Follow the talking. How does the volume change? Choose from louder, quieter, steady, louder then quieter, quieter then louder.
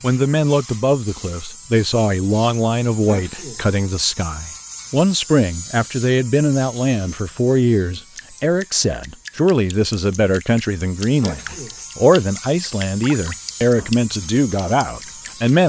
steady.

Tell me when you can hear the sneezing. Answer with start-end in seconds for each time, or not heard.
3.0-3.6, 11.2-11.8.